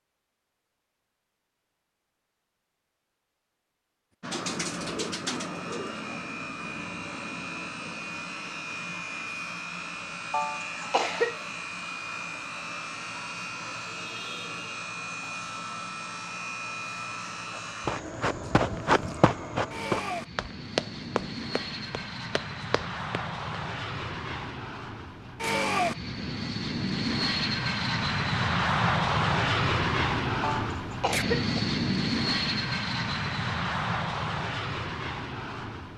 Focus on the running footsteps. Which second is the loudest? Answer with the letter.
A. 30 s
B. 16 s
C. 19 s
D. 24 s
C.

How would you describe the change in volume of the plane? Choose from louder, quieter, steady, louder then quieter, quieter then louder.
louder.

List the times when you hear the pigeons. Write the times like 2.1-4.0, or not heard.
4.3-6.2.